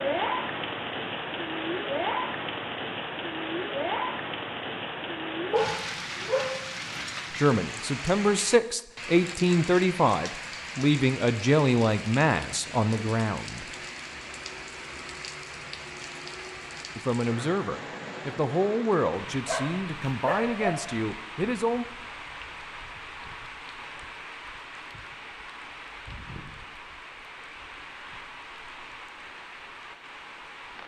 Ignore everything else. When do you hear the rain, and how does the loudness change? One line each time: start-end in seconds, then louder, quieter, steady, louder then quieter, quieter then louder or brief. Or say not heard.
0.0-30.8 quieter.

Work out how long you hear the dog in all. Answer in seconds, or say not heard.
3 s.